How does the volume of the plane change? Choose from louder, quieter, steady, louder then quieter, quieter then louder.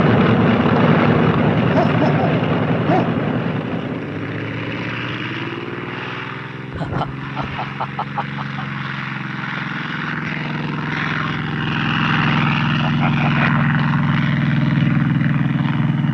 quieter then louder.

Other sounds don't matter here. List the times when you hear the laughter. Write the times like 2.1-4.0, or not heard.
1.7-3.2, 6.7-8.7, 12.8-13.7.